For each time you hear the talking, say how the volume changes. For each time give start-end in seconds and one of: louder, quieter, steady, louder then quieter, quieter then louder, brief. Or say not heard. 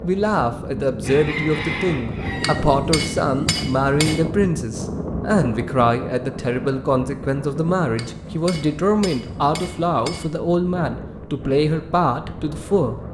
0.0-13.0 steady.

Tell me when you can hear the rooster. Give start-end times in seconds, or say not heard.
1.0-2.5.